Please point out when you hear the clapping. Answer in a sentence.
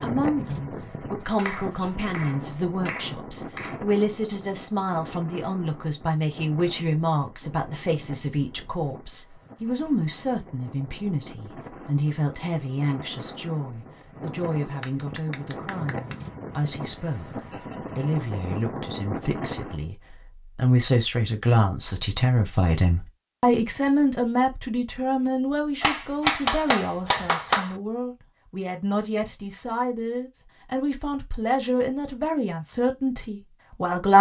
The clapping can be heard from 1.4 to 3.8 s, from 14.8 to 16.1 s and from 25.8 to 27.8 s.